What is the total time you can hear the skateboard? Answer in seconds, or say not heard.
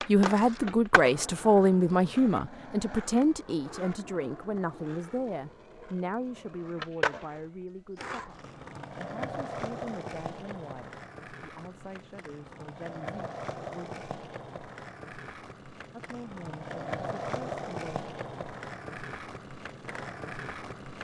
21 s.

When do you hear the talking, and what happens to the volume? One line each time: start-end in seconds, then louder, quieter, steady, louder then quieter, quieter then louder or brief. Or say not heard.
0.1-14.0 quieter
15.9-18.1 brief.